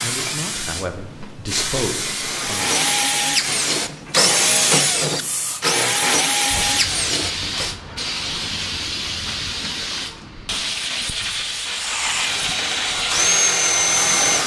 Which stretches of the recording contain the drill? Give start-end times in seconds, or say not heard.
2.3-7.8, 11.7-14.4.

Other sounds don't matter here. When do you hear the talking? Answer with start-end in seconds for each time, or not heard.
0.0-2.8.